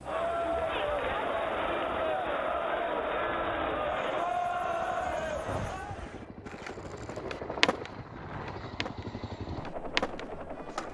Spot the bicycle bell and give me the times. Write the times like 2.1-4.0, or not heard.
5.5-6.2.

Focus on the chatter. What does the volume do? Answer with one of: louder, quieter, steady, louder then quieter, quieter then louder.
steady.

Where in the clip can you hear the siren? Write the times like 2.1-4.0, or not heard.
not heard.